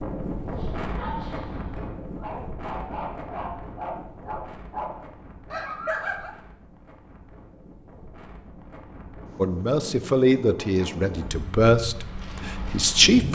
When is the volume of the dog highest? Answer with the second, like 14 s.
6 s.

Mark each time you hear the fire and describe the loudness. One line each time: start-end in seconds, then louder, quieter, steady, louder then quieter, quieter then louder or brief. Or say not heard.
not heard.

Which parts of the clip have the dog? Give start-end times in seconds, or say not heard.
0.4-6.3.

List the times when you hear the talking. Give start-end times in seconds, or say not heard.
9.3-13.3.